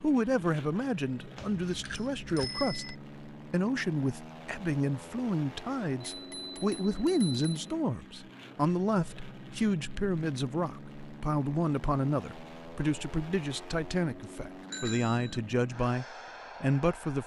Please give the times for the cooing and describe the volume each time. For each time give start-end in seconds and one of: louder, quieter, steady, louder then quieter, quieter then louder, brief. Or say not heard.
not heard.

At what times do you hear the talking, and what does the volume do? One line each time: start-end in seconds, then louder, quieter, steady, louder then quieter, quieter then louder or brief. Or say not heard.
0.0-17.2 steady.